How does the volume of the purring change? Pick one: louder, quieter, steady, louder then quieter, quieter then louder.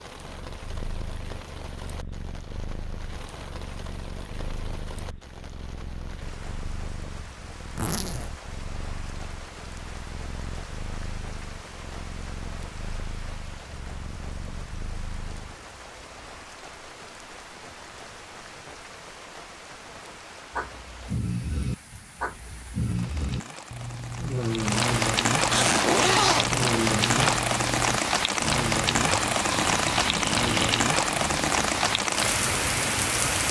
steady.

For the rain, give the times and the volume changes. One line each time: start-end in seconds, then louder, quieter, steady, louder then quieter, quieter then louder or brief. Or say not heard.
0.0-33.4 louder.